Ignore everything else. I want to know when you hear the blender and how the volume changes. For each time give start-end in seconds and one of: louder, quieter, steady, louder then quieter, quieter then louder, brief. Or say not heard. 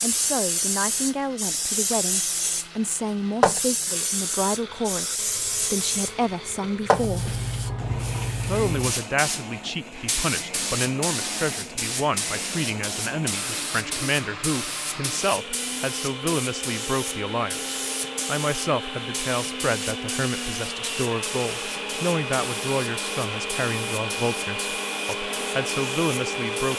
0.0-26.7 louder.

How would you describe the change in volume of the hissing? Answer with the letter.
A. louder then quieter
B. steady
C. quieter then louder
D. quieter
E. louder
D.